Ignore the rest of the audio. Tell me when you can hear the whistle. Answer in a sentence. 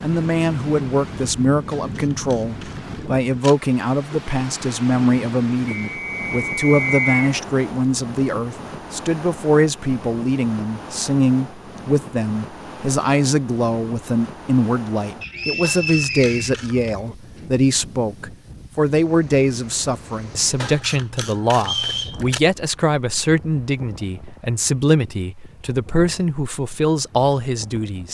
You can hear the whistle from 5.9 to 7.1 s, from 15.2 to 16.6 s and from 21.6 to 22.2 s.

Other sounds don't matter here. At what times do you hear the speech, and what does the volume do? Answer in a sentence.
You can hear the speech from 0.0 to 28.1 s, at a steady volume.